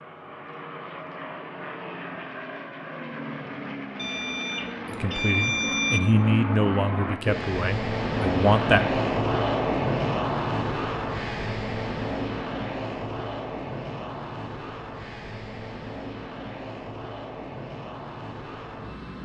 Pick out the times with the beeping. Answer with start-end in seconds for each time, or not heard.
4.0-6.0.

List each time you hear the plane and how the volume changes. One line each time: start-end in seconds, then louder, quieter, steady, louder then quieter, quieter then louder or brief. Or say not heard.
0.0-19.2 louder then quieter.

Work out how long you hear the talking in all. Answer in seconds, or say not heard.
4 s.